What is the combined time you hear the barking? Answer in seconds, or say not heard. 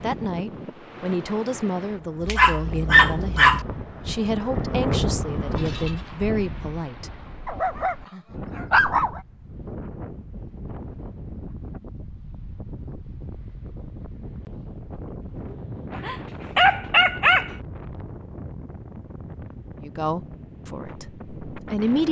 5 s.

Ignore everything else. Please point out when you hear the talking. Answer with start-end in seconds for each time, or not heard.
0.0-7.1, 19.8-22.0.